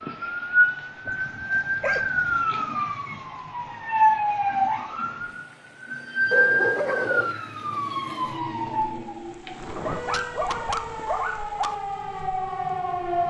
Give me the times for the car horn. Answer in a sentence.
The car horn can't be heard in this clip.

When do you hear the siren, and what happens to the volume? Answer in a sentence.
You can hear the siren from 0.0 to 13.2 s, getting quieter.